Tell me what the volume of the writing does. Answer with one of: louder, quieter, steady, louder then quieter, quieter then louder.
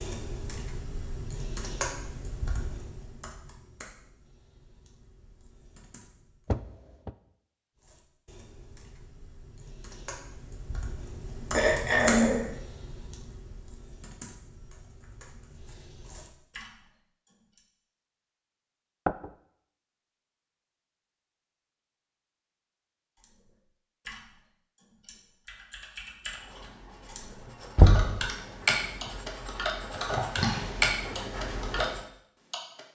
louder then quieter.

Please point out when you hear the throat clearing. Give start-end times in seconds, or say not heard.
11.5-12.4.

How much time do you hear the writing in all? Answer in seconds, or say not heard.
6 s.